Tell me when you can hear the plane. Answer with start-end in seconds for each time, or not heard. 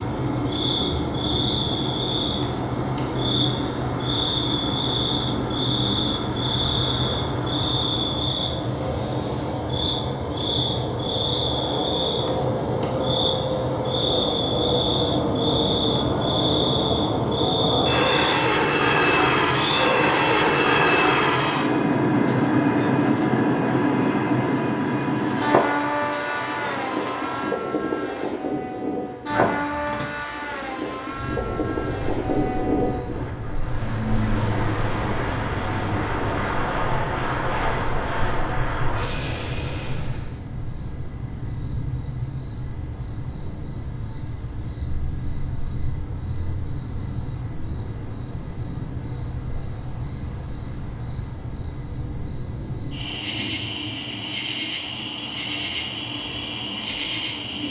0.0-40.4.